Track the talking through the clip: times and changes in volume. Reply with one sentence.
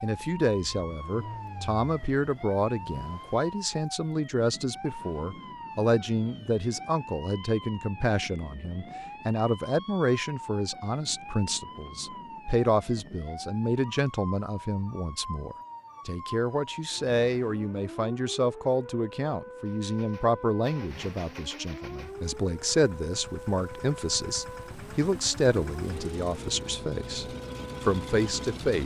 The talking can be heard from 0.0 to 28.8 s, at a steady volume.